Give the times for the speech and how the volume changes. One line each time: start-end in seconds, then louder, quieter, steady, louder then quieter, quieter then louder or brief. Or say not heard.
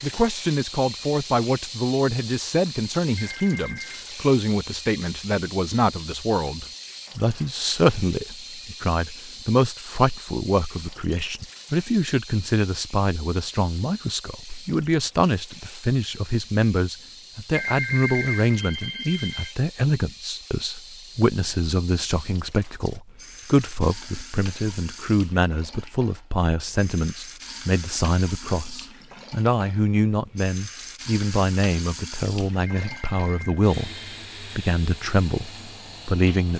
0.0-36.5 steady.